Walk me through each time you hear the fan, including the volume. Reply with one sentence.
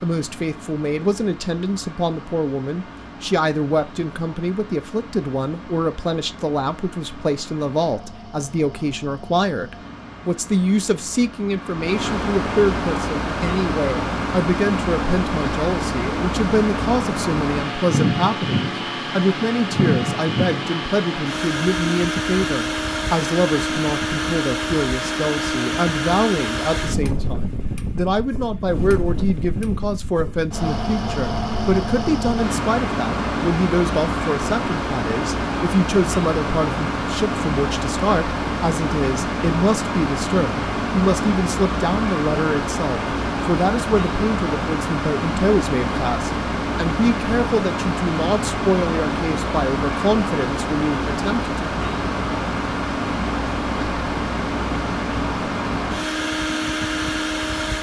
You can hear the fan from 0.0 to 57.7 s, getting louder.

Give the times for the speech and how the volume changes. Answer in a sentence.
The speech can be heard from 0.0 to 51.5 s, at a steady volume.